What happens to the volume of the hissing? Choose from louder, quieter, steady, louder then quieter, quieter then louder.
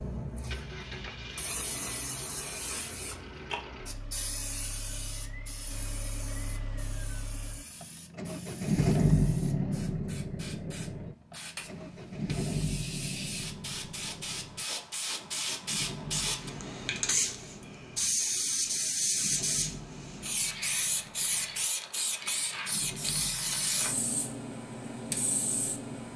quieter then louder.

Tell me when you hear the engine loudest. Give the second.
9 s.